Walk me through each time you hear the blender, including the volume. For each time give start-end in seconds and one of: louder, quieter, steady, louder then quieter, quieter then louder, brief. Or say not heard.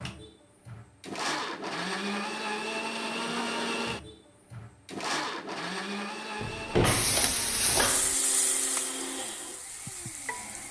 0.0-10.6 quieter.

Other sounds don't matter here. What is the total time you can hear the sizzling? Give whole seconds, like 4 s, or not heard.
4 s.